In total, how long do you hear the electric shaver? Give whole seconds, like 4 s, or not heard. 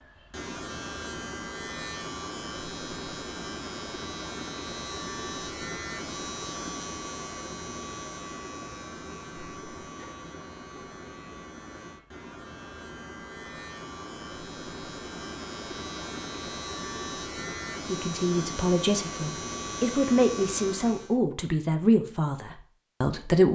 21 s.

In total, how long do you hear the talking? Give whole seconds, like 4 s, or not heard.
6 s.